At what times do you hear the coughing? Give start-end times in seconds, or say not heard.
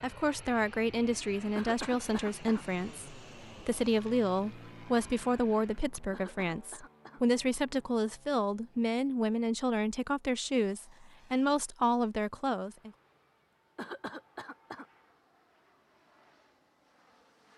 1.6-2.6, 6.1-7.2, 13.8-14.8.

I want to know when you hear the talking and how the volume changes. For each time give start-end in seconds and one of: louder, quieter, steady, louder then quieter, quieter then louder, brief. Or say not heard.
0.0-12.9 steady.